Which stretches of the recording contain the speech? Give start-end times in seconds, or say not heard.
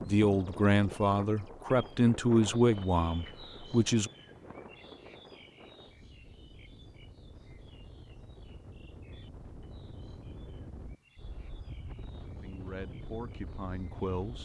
0.1-4.1, 12.4-14.3.